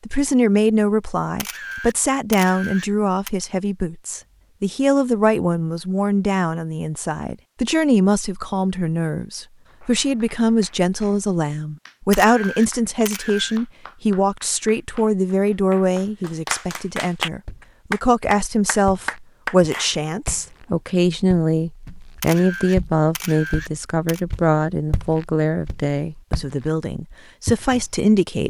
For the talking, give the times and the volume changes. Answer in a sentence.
The talking can be heard from 0.0 to 28.4 s, at a steady volume.